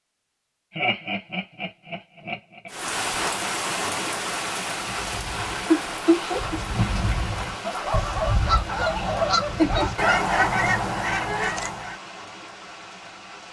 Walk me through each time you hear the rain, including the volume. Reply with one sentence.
The rain can be heard from 2.6 to 13.4 s, getting quieter.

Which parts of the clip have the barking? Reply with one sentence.
You can hear the barking from 7.6 to 10.1 s.